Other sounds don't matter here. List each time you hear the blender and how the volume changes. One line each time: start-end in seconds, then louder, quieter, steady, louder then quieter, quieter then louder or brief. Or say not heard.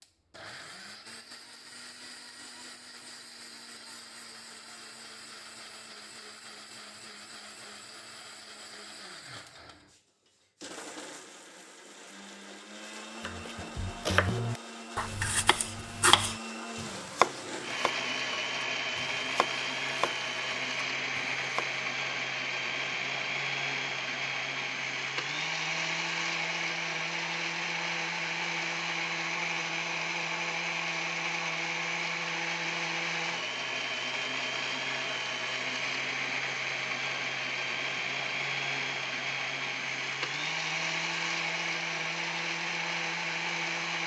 0.0-44.0 louder.